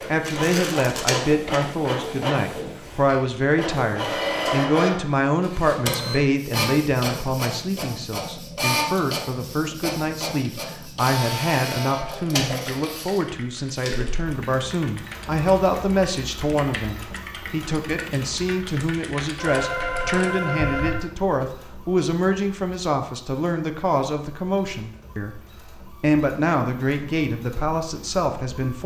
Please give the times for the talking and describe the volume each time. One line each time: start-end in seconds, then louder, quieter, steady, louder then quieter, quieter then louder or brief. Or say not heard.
0.1-28.8 steady.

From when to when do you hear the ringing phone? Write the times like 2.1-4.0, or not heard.
19.4-20.9.